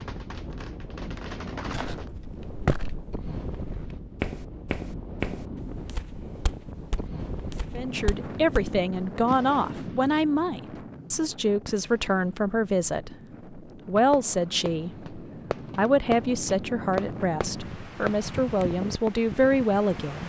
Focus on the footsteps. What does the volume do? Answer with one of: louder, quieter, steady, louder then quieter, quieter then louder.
quieter.